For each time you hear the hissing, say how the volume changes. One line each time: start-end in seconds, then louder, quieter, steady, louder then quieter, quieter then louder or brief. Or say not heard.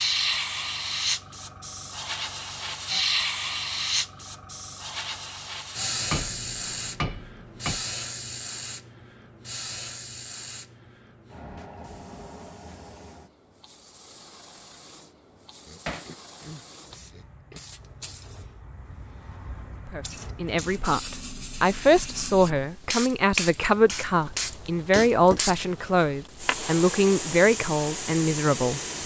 0.0-29.0 quieter then louder.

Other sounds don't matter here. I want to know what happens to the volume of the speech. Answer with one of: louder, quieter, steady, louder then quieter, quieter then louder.
steady.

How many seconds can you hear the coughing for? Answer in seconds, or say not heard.
2 s.